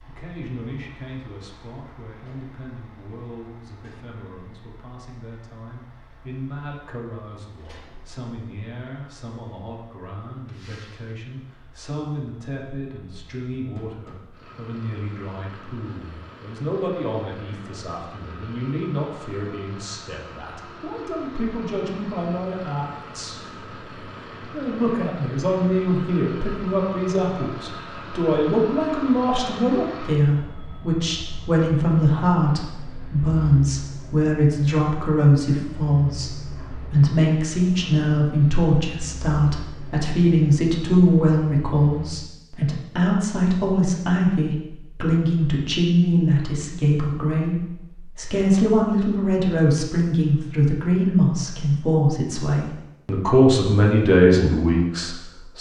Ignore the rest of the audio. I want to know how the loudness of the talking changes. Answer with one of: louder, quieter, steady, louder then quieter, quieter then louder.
louder.